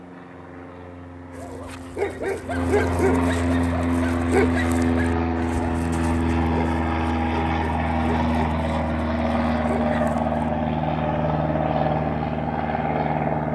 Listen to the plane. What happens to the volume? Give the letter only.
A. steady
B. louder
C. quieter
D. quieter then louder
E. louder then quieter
B.